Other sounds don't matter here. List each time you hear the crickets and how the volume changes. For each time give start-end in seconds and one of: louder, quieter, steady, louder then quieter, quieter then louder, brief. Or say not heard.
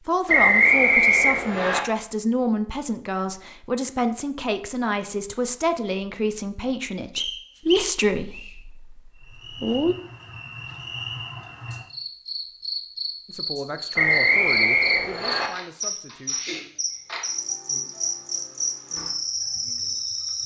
9.2-20.4 louder.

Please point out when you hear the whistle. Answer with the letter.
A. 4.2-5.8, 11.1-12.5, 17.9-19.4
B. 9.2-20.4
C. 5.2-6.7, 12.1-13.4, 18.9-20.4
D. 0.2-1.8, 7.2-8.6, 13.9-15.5
D.